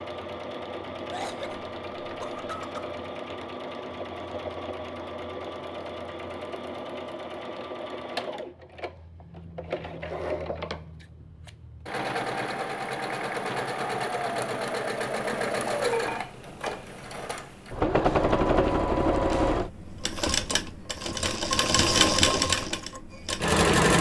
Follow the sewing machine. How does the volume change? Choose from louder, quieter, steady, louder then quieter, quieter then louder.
louder.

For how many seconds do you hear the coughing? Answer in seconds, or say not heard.
2 s.